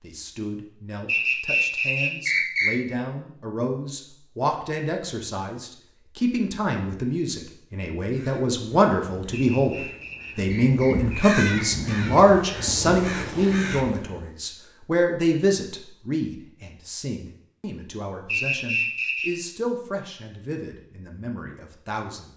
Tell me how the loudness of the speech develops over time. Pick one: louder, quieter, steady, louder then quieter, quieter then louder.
louder then quieter.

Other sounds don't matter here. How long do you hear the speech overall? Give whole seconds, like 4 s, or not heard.
22 s.